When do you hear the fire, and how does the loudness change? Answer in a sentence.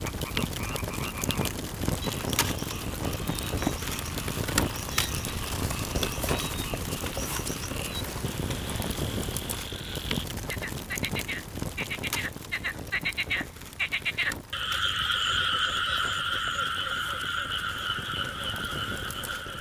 You can hear the fire from 0.0 to 19.5 s, getting quieter.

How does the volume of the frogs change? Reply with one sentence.
The loudness of the frogs goes up.